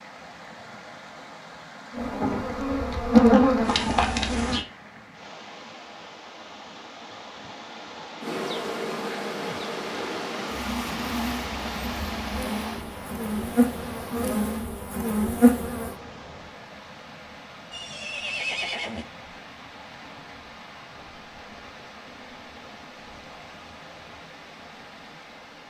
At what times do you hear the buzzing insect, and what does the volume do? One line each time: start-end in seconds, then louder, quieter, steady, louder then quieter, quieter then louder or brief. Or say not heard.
1.9-4.7 brief
8.2-15.9 louder.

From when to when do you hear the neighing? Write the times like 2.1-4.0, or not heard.
17.7-19.1.